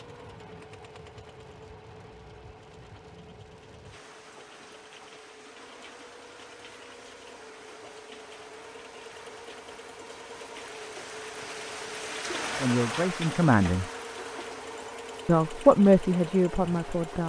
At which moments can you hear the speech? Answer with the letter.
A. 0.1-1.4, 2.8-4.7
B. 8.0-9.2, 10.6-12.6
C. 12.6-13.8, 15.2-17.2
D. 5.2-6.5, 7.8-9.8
C.